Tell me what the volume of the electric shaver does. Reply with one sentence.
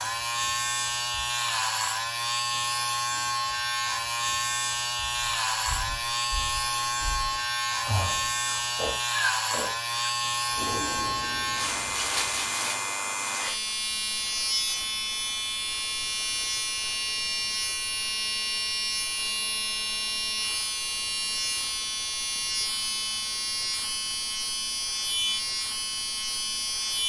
The volume of the electric shaver stays about the same.